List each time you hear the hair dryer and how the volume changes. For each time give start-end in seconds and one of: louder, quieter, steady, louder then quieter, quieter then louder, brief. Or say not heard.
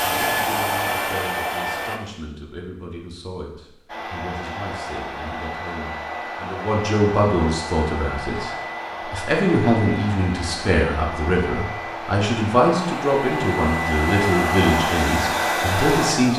0.0-2.0 brief
3.9-16.3 louder.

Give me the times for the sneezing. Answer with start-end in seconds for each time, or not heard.
not heard.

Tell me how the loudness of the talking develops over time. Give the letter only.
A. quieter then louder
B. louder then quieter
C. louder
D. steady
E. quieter
C.